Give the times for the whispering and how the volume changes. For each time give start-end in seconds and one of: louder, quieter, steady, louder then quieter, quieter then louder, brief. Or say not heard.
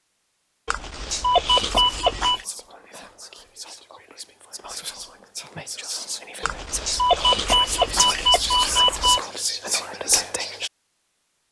1.1-10.7 louder.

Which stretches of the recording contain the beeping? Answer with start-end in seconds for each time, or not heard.
0.7-2.5, 6.4-9.2.